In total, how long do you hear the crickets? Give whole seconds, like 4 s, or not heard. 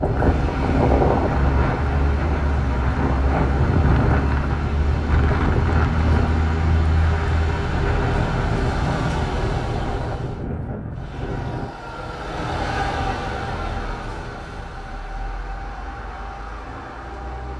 not heard.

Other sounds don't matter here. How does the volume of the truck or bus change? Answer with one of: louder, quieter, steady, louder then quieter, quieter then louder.
quieter.